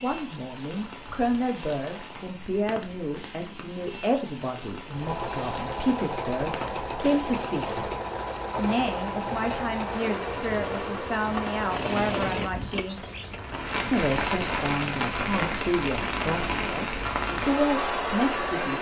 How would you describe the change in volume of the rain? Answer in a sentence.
The loudness of the rain goes up.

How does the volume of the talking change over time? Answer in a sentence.
The volume of the talking stays about the same.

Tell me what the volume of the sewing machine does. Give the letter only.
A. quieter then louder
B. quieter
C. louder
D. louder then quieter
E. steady
E.